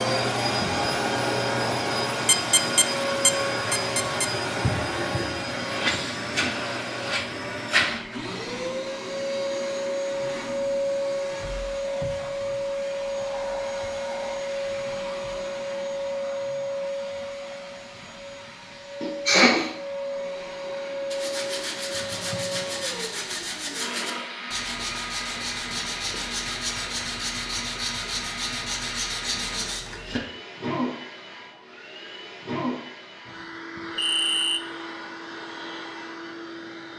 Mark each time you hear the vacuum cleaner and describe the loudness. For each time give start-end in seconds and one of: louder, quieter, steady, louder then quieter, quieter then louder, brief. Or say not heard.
0.0-36.9 quieter.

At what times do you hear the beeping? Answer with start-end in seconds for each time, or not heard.
2.2-4.3, 34.0-34.6.